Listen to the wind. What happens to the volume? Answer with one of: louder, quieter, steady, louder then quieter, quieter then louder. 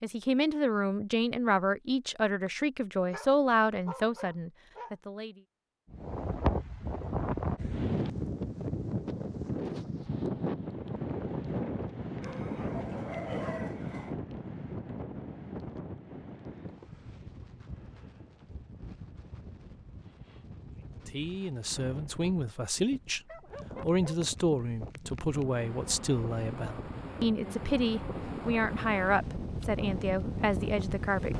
quieter then louder.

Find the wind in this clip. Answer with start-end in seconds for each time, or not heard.
5.9-31.3.